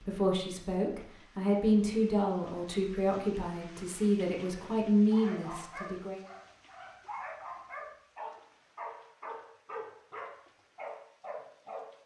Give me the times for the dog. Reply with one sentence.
The dog can be heard from 5.1 to 11.9 s.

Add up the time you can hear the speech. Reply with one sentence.
You can hear the speech for 6 seconds altogether.